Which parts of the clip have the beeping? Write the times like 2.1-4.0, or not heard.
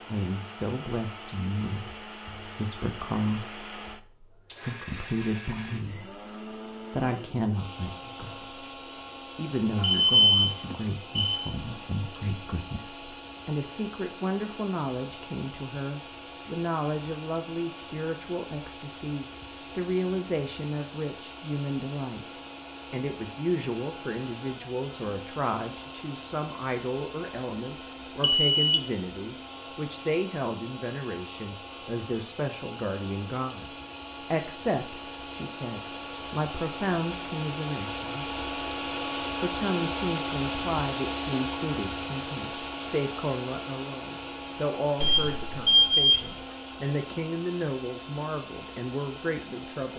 9.8-11.4, 28.2-28.8, 45.0-46.3.